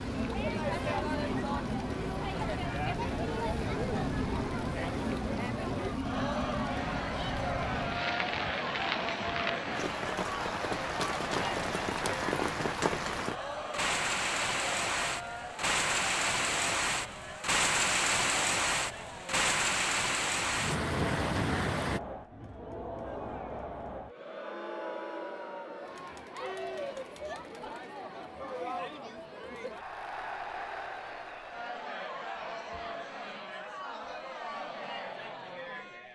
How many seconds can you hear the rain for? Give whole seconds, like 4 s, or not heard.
22 s.